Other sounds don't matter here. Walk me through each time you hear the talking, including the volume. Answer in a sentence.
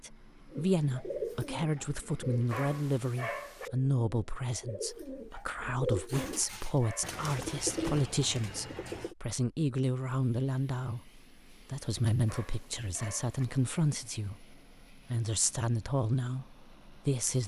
The talking can be heard from 0.0 to 17.4 s, at a steady volume.